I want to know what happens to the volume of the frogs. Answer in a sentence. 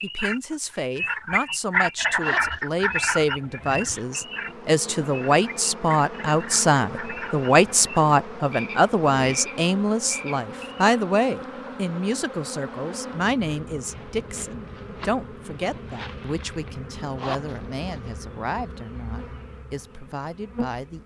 The volume of the frogs goes down.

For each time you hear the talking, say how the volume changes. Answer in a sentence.
The talking can be heard from 0.0 to 21.0 s, getting louder then quieter.